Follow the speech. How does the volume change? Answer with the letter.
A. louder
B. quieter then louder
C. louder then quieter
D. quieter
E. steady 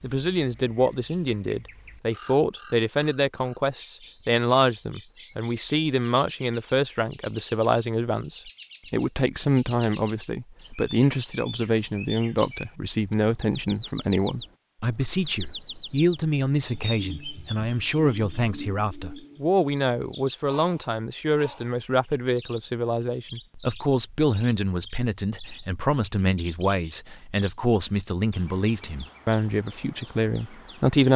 E.